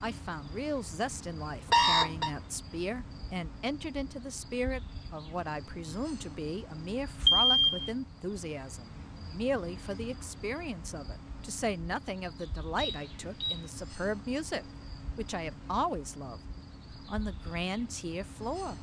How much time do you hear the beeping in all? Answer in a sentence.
You can hear the beeping for 2 seconds altogether.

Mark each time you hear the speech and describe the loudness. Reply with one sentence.
The speech can be heard from 0.0 to 16.4 s, at a steady volume; and briefly from 17.1 to 18.7 s.